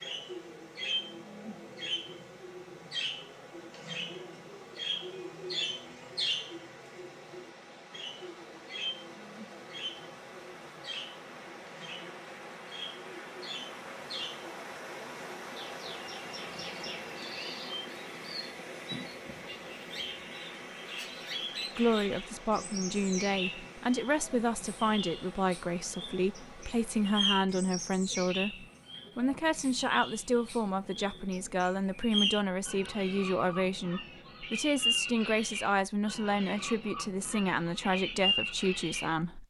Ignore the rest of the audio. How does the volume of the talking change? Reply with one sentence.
The volume of the talking stays about the same.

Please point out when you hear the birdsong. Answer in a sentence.
You can hear the birdsong from 0.0 to 39.1 s.